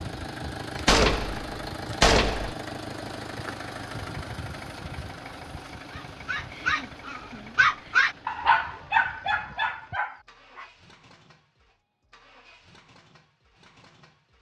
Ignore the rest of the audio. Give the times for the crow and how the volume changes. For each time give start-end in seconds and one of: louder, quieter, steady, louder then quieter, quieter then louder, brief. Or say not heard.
not heard.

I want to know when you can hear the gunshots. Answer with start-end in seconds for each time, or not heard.
0.8-2.5.